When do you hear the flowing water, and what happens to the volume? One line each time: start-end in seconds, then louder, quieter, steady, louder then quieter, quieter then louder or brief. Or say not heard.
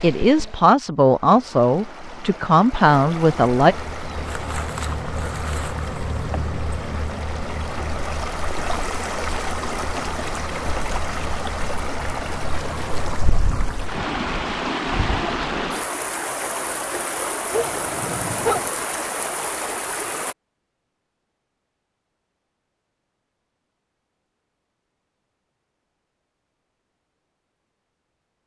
0.0-20.4 louder.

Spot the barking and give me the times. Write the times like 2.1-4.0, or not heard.
17.5-18.7.